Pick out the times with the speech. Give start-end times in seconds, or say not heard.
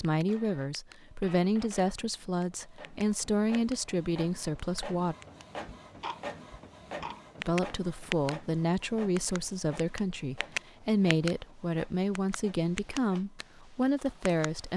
0.0-5.2, 7.3-14.7.